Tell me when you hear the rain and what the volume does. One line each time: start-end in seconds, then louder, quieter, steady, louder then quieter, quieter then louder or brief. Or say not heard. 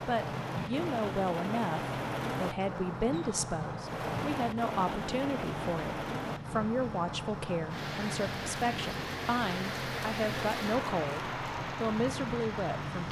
0.0-13.0 steady.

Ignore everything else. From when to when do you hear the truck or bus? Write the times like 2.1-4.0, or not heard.
0.0-13.0.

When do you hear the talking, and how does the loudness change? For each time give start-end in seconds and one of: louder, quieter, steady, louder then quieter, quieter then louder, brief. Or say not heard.
0.1-13.0 steady.